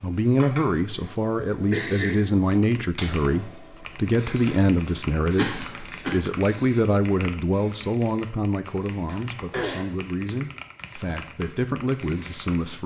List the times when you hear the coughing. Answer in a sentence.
You can hear the coughing from 0.7 to 1.1 s, from 1.7 to 2.2 s, from 5.3 to 6.2 s and from 9.1 to 9.8 s.